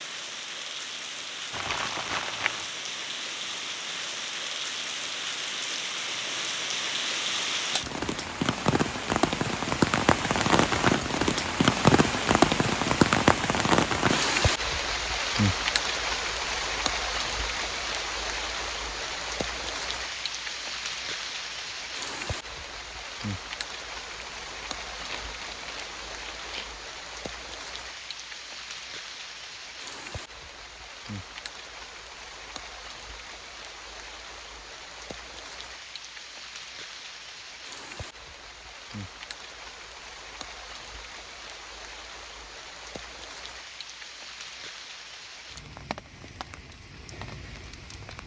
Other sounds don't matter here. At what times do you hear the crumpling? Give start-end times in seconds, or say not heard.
1.5-2.7, 24.1-26.8.